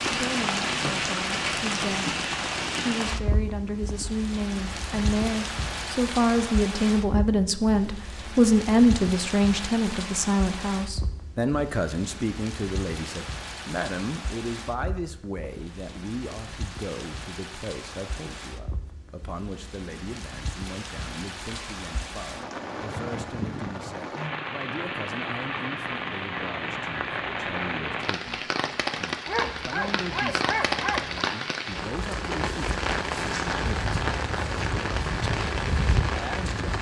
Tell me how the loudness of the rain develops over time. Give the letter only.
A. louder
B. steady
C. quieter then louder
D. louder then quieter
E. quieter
C.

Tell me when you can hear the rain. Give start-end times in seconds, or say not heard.
0.0-36.7.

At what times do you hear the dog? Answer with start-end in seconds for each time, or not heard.
29.2-31.2.